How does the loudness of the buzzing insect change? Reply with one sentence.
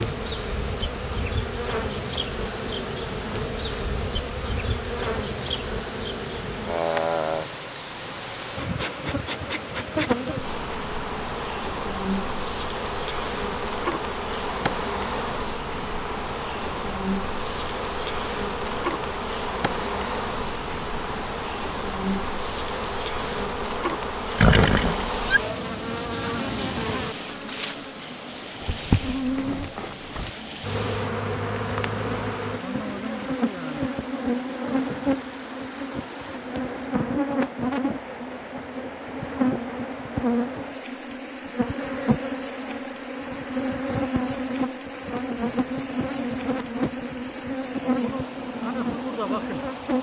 The volume of the buzzing insect stays about the same.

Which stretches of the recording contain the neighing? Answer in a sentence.
You can hear the neighing from 24.4 to 25.4 s.